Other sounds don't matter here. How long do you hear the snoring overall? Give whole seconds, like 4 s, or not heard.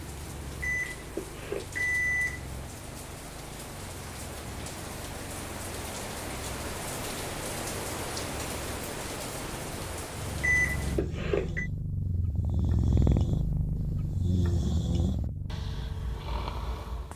6 s.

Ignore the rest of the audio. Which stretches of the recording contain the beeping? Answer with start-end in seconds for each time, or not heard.
0.6-2.4, 10.4-11.7.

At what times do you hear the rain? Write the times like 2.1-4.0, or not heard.
0.0-11.1.